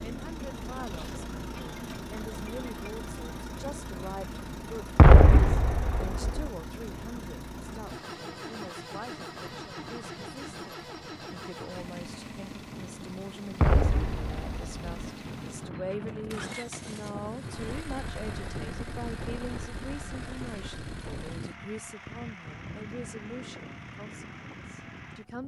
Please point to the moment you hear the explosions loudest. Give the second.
5 s.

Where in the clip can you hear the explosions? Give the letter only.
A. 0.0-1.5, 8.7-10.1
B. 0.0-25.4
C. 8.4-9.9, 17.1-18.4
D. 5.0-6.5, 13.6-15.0
D.